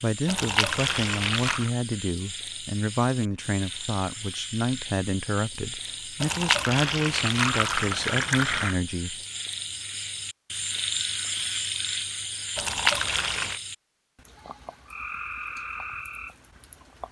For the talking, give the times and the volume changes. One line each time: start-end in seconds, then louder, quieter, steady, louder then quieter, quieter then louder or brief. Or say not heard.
0.0-9.2 steady.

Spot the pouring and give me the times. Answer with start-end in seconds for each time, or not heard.
0.2-1.7, 6.2-8.8, 12.6-13.6.